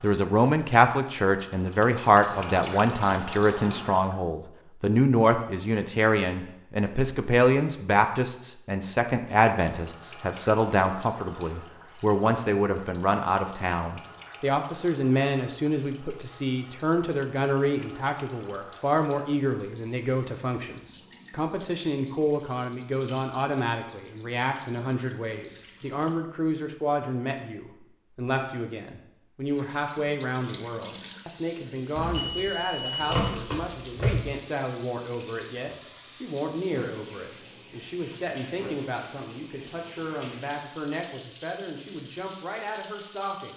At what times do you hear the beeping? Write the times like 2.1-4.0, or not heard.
2.2-3.8, 31.9-34.1.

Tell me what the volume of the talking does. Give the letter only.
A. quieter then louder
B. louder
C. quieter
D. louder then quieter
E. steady
C.